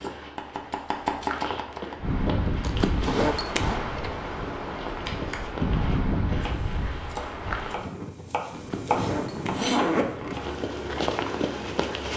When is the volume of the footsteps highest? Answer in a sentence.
The loudest moment of the footsteps is at 11 seconds.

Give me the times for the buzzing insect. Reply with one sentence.
The buzzing insect can't be heard in this clip.